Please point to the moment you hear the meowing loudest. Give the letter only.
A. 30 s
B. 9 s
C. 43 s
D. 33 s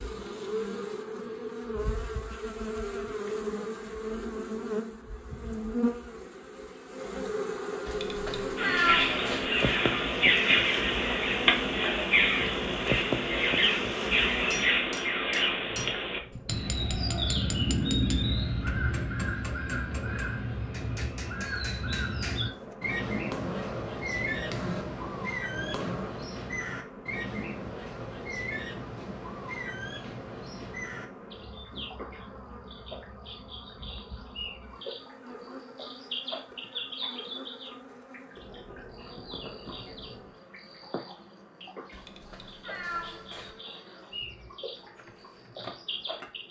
B.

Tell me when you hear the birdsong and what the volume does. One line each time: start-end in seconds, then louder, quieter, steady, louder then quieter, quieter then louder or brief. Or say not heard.
8.6-46.4 quieter.